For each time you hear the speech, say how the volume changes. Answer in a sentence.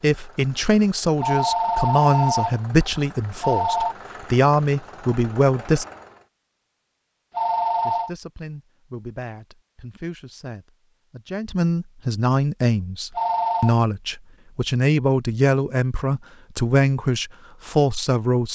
The speech can be heard from 0.0 to 5.8 s, at a steady volume; and from 7.8 to 18.4 s, getting louder.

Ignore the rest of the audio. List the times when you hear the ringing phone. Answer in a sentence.
You can hear the ringing phone from 1.2 to 2.6 s, from 3.4 to 4.0 s, from 7.3 to 8.1 s and from 13.2 to 13.8 s.